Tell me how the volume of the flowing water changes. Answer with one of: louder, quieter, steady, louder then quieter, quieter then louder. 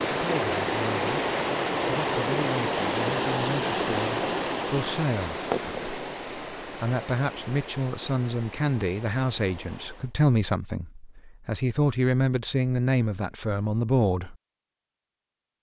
quieter.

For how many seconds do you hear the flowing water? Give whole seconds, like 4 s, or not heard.
10 s.